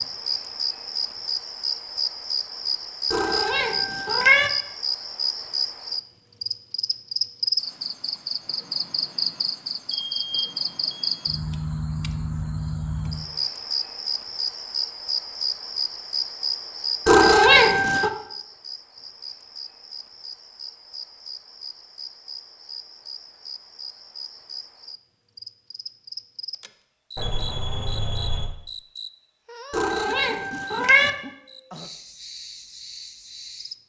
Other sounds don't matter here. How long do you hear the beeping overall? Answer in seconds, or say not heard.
3 s.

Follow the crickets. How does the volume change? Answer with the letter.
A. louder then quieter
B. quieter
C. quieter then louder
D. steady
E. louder
B.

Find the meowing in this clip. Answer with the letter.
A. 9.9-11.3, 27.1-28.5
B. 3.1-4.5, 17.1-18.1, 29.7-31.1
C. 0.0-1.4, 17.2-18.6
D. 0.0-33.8
B.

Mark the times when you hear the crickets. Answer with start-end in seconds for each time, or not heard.
0.0-33.8.